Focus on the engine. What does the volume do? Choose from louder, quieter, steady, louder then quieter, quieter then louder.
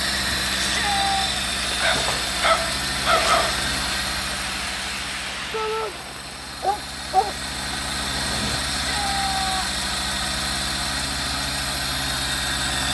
quieter then louder.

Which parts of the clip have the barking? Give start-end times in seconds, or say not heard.
1.8-3.5, 6.6-7.8.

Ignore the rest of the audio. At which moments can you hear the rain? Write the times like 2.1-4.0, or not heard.
0.0-8.6.